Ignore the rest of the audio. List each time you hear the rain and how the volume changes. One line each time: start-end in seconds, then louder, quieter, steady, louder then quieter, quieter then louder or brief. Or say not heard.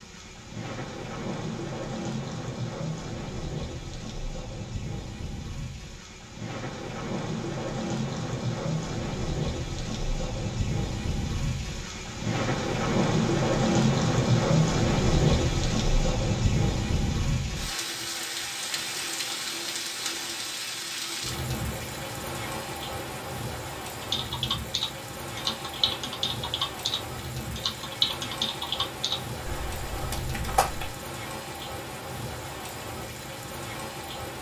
0.0-34.3 louder then quieter.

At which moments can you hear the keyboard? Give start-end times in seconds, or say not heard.
24.0-30.9.